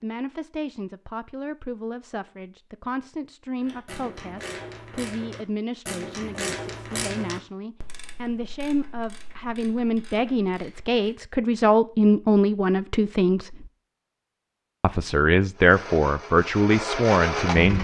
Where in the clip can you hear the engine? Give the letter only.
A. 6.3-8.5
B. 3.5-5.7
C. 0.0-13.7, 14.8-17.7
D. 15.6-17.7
D.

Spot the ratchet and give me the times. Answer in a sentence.
You can hear the ratchet from 3.6 to 11.2 s.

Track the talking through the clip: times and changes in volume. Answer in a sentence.
The talking can be heard from 0.0 to 13.7 s, getting louder; and briefly from 14.8 to 17.7 s.